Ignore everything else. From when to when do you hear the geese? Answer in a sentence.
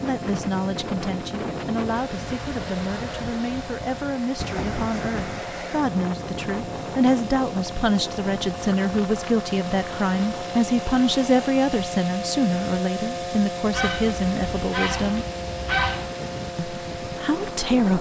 The geese can be heard from 13.7 to 16.1 s.